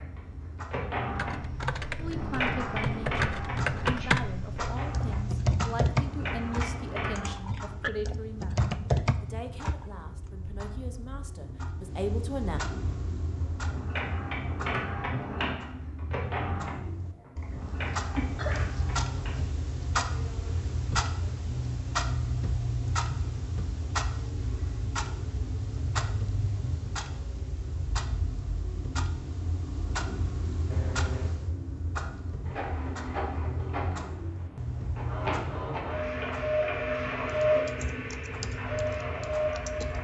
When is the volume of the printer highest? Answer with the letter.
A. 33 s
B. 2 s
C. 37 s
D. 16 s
C.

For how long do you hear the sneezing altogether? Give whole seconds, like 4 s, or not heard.
2 s.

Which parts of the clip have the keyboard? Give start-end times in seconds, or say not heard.
1.1-9.8, 37.5-39.9.